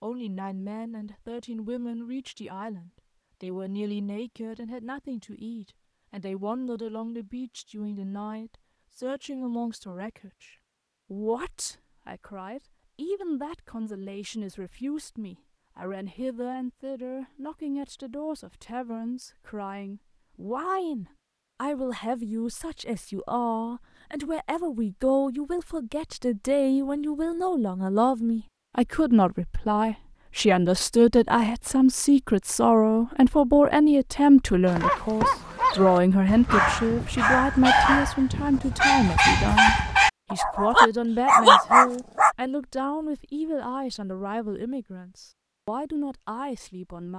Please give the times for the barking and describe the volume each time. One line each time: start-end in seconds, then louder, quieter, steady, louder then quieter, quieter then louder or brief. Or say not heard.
34.6-42.4 louder.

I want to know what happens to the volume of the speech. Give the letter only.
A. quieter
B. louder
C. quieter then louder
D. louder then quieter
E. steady
D.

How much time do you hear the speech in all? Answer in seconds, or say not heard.
47 s.